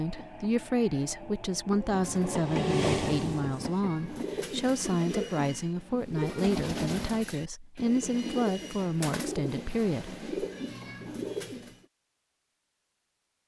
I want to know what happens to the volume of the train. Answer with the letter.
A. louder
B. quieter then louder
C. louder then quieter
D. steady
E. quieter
C.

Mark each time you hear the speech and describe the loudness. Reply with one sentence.
You can hear the speech from 0.0 to 10.2 s, at a steady volume.